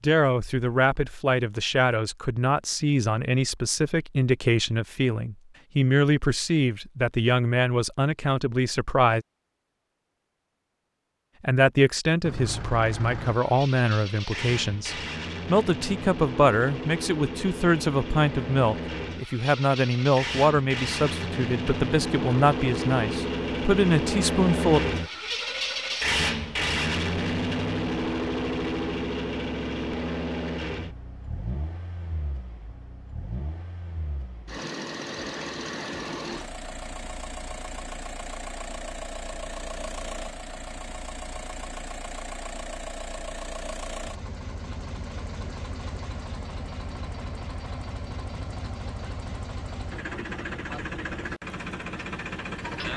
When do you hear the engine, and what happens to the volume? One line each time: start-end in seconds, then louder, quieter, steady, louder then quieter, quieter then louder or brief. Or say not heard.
12.2-52.9 louder then quieter.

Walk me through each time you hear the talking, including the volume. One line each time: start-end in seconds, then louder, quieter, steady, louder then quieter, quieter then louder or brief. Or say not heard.
0.0-9.2 steady
11.4-24.8 steady.